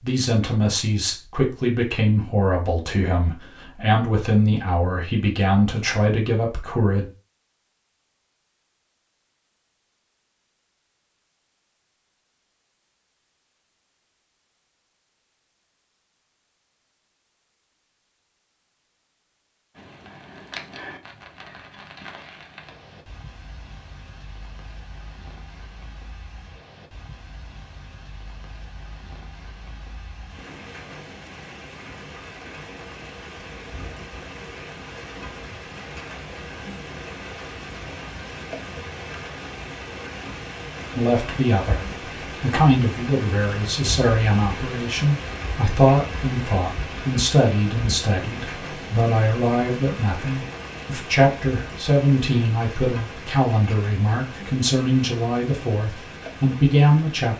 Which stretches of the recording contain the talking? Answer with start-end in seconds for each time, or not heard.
0.0-7.0, 41.0-57.3.